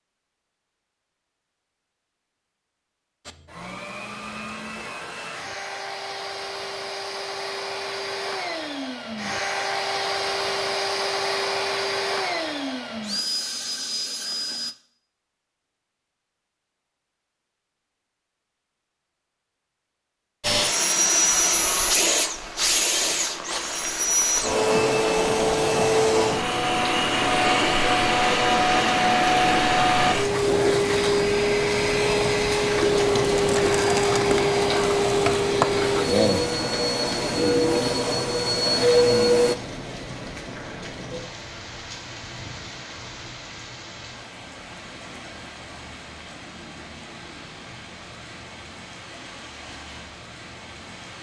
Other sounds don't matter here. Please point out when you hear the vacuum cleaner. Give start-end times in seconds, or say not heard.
3.2-14.8, 20.4-39.5.